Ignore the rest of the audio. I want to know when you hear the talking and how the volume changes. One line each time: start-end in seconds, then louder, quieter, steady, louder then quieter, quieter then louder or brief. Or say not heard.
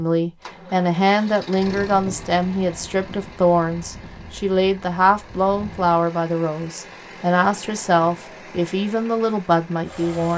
0.0-10.3 steady.